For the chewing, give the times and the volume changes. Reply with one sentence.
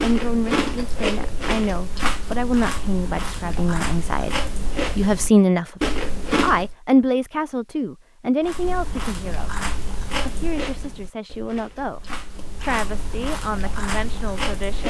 You can hear the chewing from 0.0 to 6.8 s, getting quieter then louder; and from 8.4 to 14.8 s, getting quieter then louder.